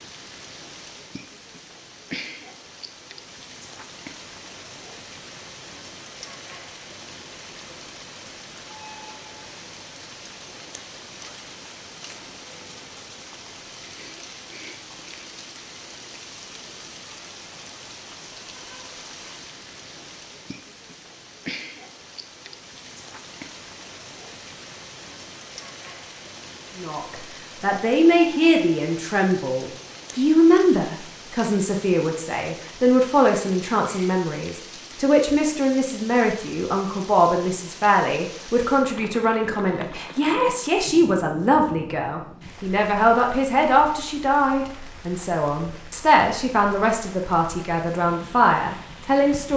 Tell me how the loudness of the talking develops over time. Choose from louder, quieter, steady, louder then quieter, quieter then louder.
steady.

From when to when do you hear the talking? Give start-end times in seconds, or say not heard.
26.8-49.5.